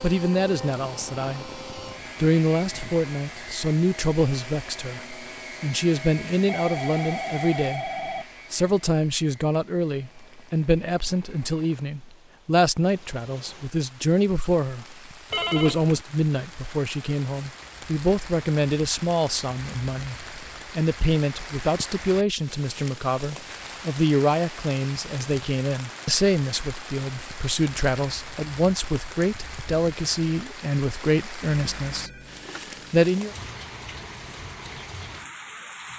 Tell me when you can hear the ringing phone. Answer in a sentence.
The ringing phone can be heard from 6.3 to 8.2 s, from 15.3 to 16.1 s and from 31.5 to 33.0 s.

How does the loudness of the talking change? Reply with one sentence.
The loudness of the talking stays about the same.